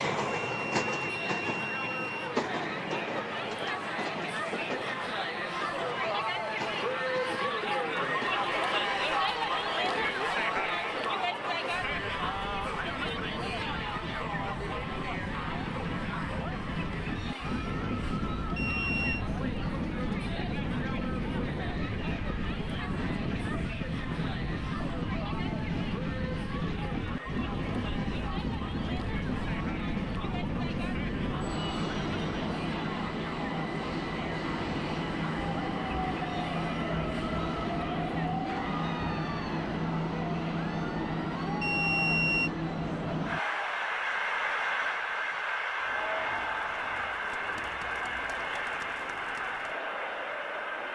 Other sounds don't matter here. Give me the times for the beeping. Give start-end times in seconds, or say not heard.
0.5-2.4, 18.6-19.2, 41.6-42.5.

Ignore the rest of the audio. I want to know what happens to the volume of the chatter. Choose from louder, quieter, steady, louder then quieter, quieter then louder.
quieter.